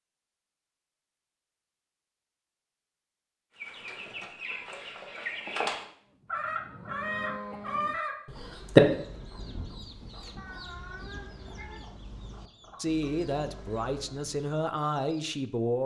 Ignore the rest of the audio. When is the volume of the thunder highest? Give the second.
10 s.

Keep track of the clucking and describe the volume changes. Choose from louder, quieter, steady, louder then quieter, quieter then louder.
louder then quieter.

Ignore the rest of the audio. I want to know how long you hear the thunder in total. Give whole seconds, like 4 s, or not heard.
4 s.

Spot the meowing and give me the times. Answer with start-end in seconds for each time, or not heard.
10.3-11.8.